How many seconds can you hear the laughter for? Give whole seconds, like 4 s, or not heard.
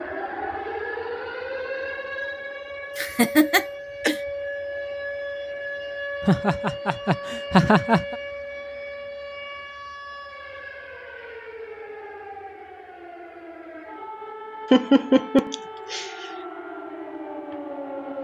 5 s.